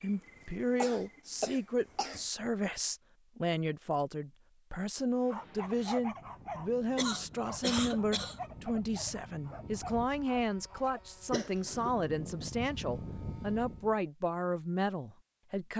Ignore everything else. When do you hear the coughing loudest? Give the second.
8 s.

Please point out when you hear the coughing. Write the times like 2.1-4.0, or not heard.
0.0-2.2, 7.0-8.4, 11.3-11.9.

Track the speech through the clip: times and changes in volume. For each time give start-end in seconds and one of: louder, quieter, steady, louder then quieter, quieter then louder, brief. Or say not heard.
0.0-15.7 steady.